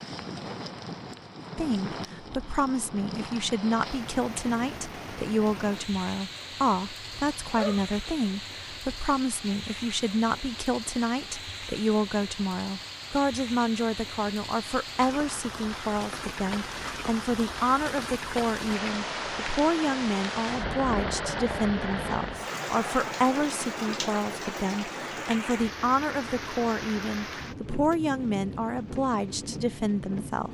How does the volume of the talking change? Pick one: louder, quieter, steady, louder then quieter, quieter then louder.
steady.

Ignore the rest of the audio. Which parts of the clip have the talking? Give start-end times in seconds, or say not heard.
1.6-30.4.